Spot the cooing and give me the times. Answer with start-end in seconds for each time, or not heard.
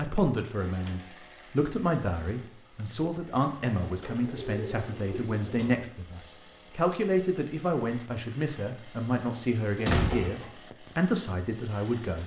3.7-5.7.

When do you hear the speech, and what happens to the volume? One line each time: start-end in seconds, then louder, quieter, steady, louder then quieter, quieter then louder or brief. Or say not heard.
0.0-12.2 steady.